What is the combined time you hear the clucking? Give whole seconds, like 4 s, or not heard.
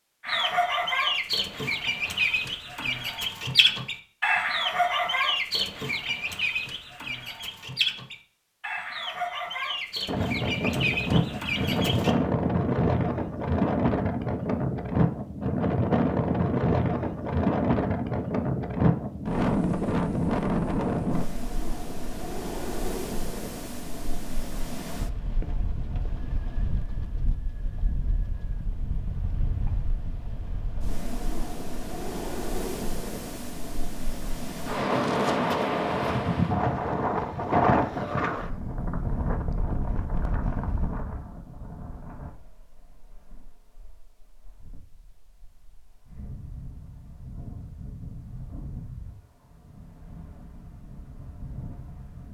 12 s.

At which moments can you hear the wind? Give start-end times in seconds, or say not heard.
10.1-52.3.